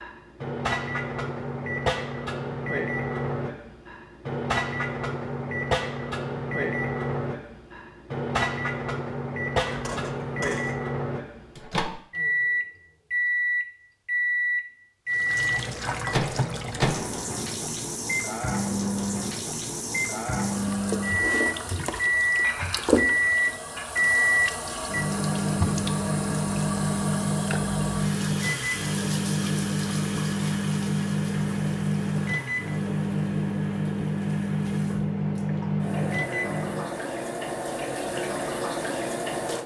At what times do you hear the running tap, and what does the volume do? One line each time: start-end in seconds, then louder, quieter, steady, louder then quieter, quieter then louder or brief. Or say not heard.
15.1-39.6 quieter then louder.